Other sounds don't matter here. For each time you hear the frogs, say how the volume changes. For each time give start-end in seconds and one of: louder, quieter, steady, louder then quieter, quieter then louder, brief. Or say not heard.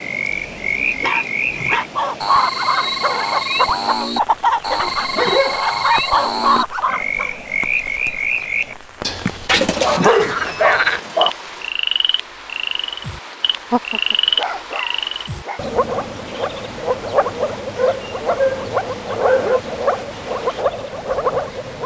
0.0-21.8 steady.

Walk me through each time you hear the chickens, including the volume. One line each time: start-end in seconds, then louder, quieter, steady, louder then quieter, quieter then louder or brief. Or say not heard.
1.8-7.3 steady.